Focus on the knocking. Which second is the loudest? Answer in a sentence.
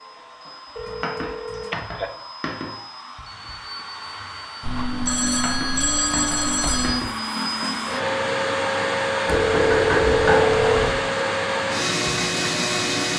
The loudest moment of the knocking is at 10 seconds.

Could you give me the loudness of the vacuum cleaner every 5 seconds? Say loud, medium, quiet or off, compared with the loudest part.
quiet, loud, loud.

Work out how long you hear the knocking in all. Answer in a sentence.
The knocking can be heard for 5 seconds in total.